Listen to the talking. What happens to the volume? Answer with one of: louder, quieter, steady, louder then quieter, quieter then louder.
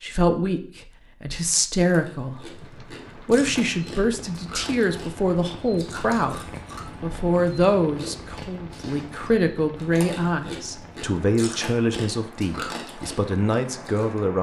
steady.